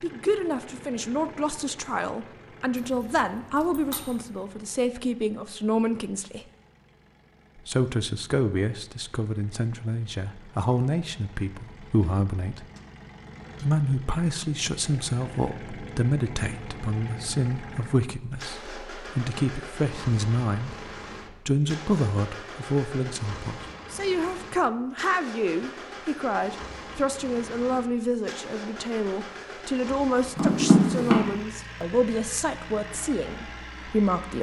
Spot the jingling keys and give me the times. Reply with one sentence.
The jingling keys can be heard from 2.8 to 4.2 s and from 30.4 to 31.2 s.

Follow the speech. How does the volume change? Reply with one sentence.
The loudness of the speech stays about the same.